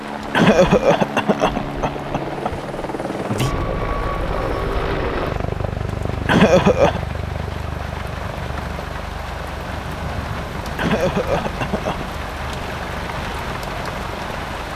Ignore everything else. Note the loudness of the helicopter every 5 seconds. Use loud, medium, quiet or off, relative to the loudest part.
loud, loud, medium.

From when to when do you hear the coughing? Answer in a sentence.
The coughing can be heard from 0.3 to 2.5 s, from 6.2 to 7.0 s and from 10.8 to 12.1 s.